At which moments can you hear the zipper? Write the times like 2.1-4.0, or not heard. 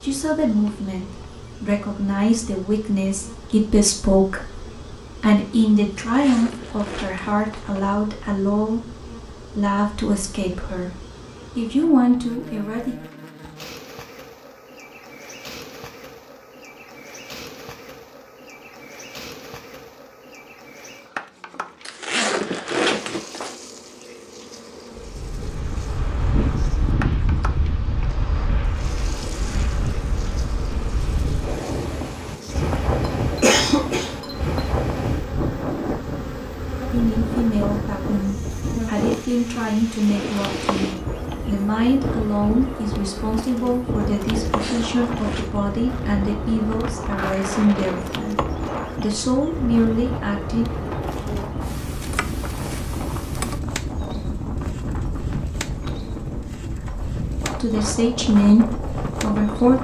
6.0-8.0, 21.9-23.6, 44.5-45.6.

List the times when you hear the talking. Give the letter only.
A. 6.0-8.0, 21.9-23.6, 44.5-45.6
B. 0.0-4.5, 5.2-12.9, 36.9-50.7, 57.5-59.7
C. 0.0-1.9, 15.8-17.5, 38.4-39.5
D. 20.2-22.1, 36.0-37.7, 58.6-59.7
B.